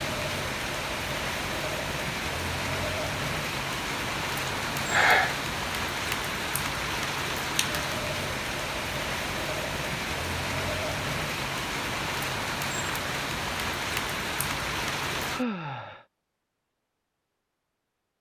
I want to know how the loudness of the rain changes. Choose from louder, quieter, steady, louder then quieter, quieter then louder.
steady.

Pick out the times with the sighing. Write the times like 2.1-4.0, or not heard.
4.7-5.3, 15.3-16.1.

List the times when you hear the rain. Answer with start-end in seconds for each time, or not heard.
0.0-15.4.